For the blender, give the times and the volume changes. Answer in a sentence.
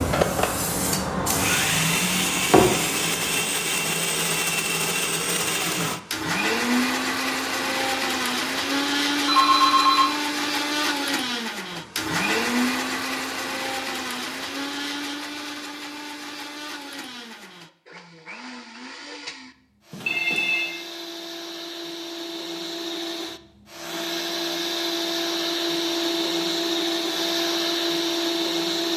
The blender can be heard from 0.0 to 28.9 s, getting quieter then louder.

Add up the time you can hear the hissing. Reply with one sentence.
The hissing can be heard for 4 seconds in total.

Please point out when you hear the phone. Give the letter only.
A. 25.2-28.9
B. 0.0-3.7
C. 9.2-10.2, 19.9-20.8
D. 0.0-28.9
C.